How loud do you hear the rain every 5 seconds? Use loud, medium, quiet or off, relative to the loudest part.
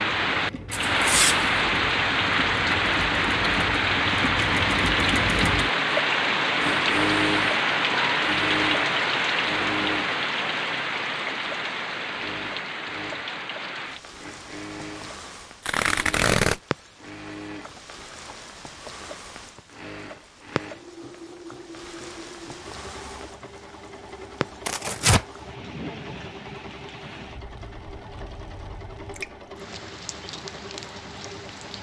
loud, loud, medium, quiet, quiet, quiet, quiet.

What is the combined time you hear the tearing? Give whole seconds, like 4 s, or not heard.
2 s.